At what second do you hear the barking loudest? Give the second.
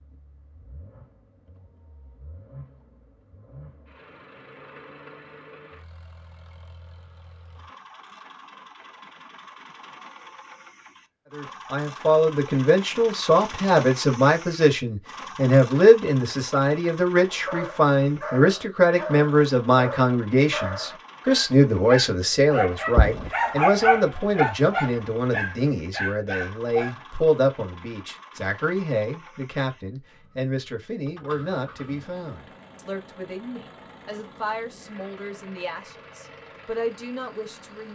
24 s.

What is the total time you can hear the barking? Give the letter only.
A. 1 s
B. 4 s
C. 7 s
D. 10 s
D.